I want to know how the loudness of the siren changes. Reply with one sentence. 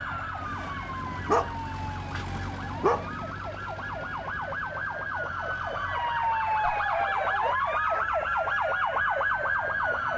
The loudness of the siren goes up.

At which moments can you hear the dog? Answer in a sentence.
The dog can be heard from 0.4 to 3.0 s and from 6.6 to 8.1 s.